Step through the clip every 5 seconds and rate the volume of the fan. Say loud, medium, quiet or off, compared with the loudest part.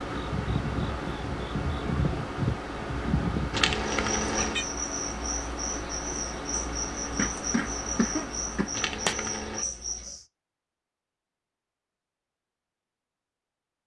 loud, loud, off.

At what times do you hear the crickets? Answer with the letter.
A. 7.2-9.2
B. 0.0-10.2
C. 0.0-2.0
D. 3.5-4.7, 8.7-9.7
B.